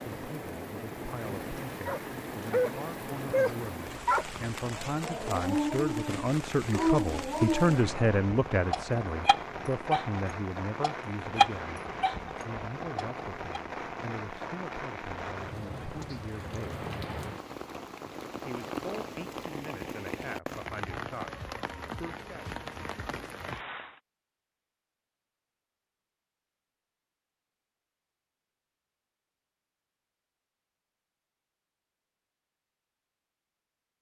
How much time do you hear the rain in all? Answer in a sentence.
You can hear the rain for 24 seconds altogether.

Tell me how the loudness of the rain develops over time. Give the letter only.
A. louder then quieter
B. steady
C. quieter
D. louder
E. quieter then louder
B.